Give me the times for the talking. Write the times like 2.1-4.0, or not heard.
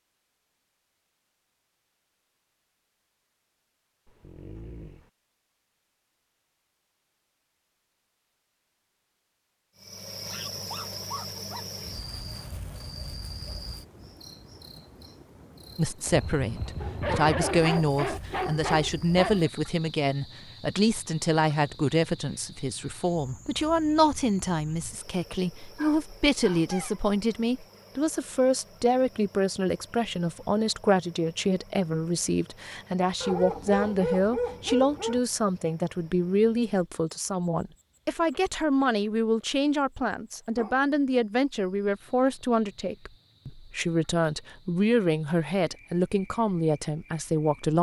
15.8-47.7.